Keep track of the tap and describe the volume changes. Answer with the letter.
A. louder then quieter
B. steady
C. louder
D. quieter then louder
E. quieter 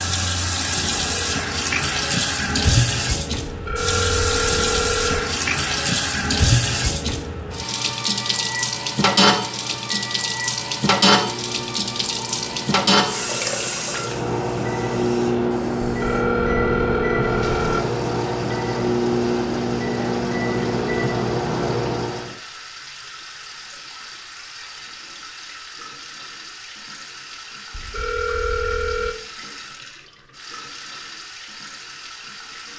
E.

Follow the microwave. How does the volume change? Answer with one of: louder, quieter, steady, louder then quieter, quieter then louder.
louder.